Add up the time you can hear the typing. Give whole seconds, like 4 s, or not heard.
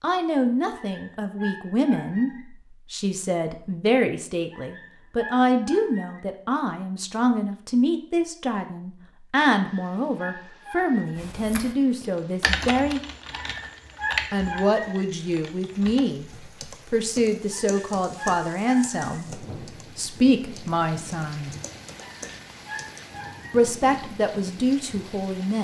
12 s.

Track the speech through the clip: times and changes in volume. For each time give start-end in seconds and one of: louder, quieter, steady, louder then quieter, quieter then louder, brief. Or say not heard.
0.0-13.0 steady
14.3-21.5 steady
23.5-25.5 brief.